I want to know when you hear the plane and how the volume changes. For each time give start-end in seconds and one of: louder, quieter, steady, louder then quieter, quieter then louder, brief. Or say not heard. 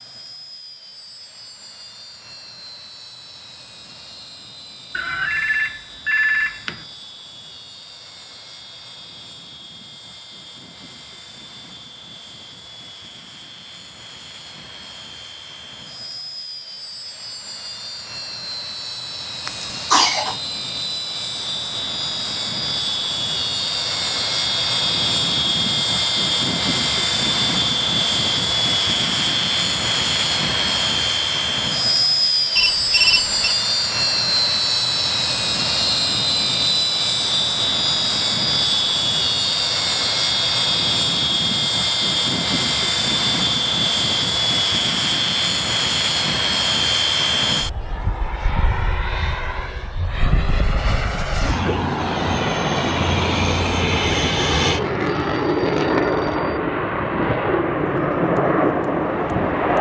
0.0-59.7 louder.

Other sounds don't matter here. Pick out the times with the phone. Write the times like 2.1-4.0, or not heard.
5.0-6.8, 32.5-33.5, 55.0-56.5.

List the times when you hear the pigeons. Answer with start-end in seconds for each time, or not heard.
not heard.